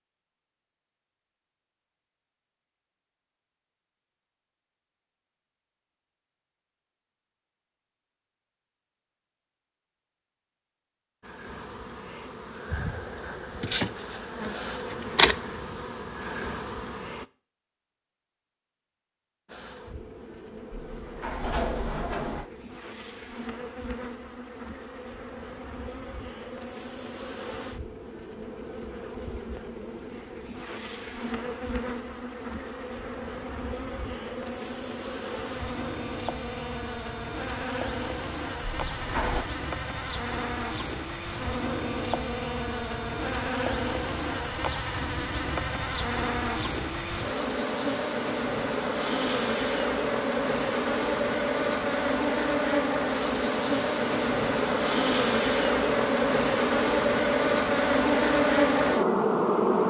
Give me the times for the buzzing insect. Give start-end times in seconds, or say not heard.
11.2-17.2, 19.4-59.8.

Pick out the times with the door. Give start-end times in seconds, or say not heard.
20.7-22.5, 38.7-39.5.